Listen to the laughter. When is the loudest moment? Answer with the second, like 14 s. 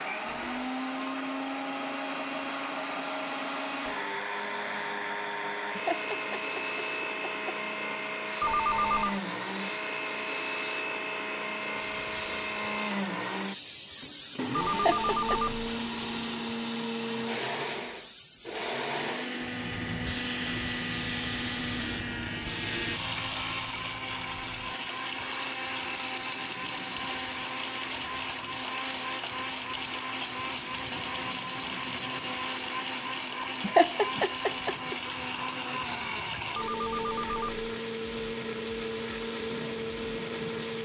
34 s.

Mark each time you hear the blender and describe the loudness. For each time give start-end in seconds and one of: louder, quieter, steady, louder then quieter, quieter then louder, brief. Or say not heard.
0.0-40.7 steady.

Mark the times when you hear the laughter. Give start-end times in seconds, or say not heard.
5.8-7.5, 14.7-15.4, 33.6-35.0.